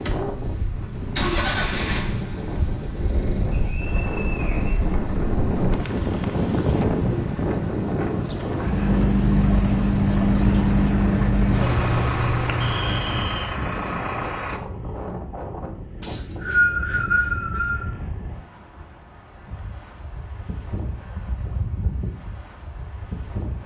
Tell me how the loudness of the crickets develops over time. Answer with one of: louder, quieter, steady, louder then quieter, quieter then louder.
louder.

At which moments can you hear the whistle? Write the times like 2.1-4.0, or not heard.
3.5-4.8, 12.6-13.4, 16.0-17.9.